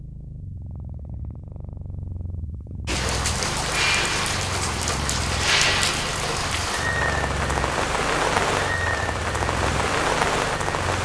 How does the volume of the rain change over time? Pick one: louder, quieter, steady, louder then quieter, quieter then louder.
steady.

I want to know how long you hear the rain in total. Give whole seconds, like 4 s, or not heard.
8 s.